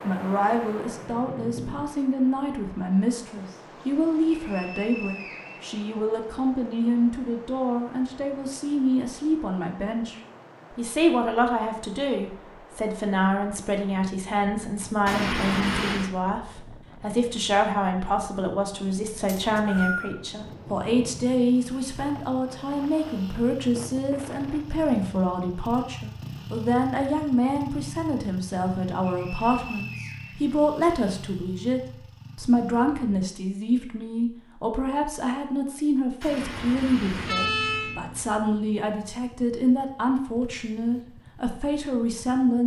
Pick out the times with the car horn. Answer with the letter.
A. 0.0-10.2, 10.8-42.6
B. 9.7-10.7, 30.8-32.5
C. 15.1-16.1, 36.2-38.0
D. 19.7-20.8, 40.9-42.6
C.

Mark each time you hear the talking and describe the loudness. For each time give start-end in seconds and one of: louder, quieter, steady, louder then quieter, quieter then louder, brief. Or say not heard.
0.0-10.2 steady
10.8-42.6 steady.